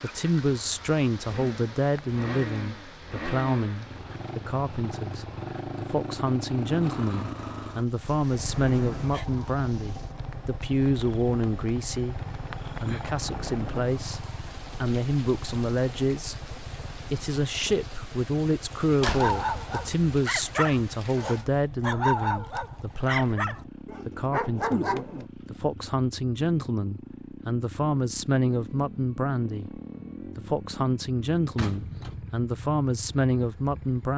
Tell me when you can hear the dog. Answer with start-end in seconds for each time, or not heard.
18.9-25.2.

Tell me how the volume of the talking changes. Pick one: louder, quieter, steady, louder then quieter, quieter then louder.
steady.